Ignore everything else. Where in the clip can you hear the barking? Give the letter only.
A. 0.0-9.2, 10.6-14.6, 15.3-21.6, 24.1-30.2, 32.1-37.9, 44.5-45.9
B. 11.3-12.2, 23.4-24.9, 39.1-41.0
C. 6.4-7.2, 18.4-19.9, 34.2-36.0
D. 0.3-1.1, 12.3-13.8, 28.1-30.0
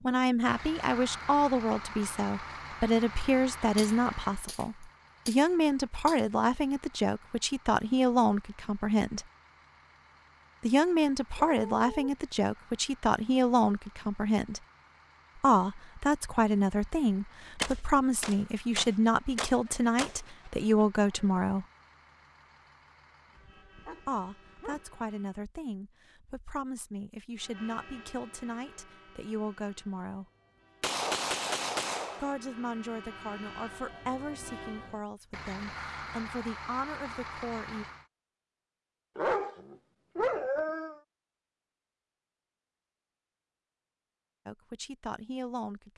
B.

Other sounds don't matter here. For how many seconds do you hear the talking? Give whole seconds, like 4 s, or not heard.
33 s.